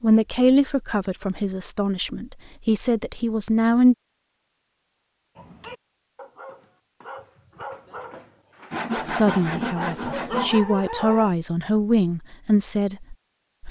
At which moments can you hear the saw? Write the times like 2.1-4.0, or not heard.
8.7-10.7.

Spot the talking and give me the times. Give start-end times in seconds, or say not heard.
0.0-4.0, 9.1-13.6.